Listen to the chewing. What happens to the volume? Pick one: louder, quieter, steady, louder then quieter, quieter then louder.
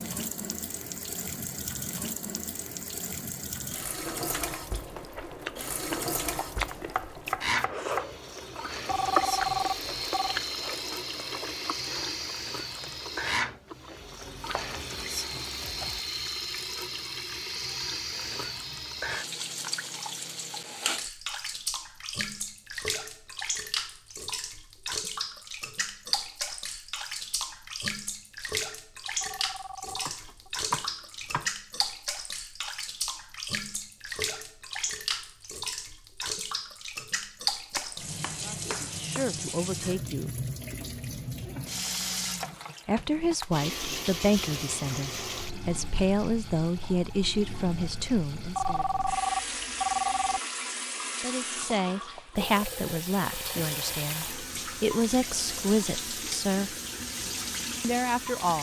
louder then quieter.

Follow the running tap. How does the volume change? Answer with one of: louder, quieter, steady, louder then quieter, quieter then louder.
steady.